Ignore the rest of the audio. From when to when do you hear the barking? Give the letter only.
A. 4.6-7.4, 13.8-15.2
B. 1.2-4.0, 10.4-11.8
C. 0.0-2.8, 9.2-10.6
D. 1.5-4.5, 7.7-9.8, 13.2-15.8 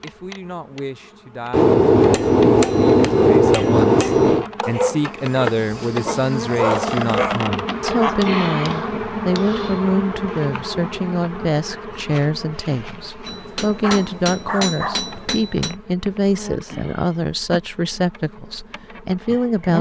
A.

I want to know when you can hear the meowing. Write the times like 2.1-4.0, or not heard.
not heard.